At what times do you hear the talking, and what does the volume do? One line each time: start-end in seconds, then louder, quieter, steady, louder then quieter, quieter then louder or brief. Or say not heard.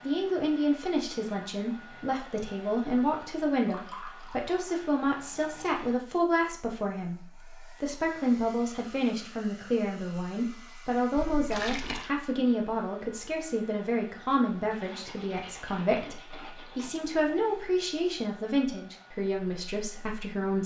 0.0-20.6 steady.